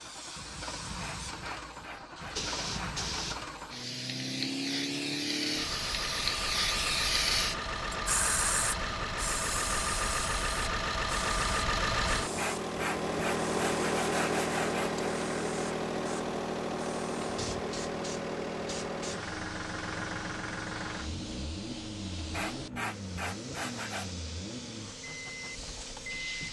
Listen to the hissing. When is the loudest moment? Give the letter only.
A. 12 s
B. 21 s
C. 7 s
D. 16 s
C.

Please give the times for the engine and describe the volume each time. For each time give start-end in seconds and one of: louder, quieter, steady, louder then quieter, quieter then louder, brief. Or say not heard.
0.0-26.4 louder then quieter.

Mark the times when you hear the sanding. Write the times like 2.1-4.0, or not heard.
0.9-3.1, 12.3-15.1, 22.3-24.1.